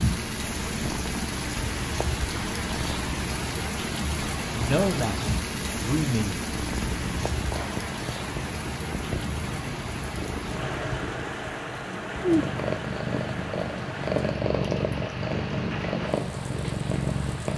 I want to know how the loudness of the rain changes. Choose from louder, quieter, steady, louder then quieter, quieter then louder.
quieter.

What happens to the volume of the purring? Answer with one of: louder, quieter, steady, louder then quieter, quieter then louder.
louder.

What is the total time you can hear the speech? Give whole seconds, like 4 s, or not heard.
2 s.